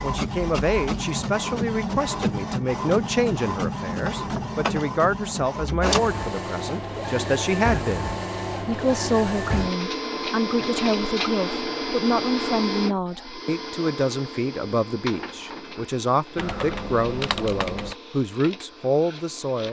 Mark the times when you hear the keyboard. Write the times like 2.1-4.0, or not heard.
16.4-17.9.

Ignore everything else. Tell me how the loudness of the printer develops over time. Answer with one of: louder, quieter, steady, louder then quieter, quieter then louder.
quieter.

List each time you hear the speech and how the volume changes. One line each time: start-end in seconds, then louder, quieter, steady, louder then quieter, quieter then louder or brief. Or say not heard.
0.0-19.6 steady.